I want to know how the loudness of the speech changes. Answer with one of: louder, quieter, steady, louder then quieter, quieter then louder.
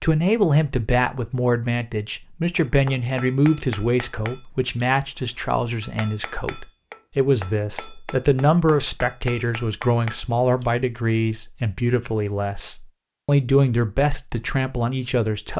steady.